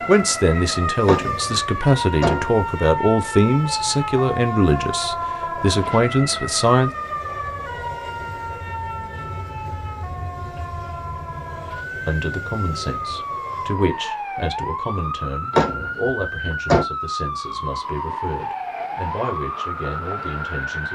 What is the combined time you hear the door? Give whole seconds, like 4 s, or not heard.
3 s.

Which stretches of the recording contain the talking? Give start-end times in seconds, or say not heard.
0.1-6.9, 12.1-20.9.